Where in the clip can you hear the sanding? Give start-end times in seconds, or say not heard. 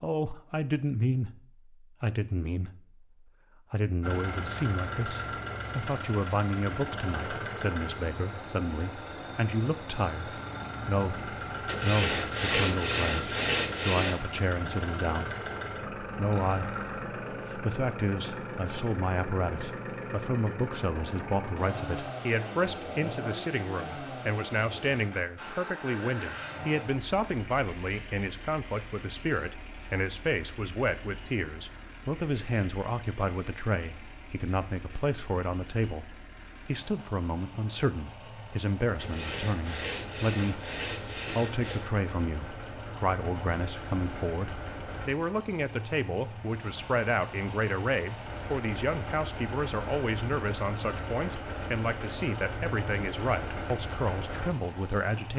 11.7-14.2, 39.0-41.8.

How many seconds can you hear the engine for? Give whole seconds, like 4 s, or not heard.
51 s.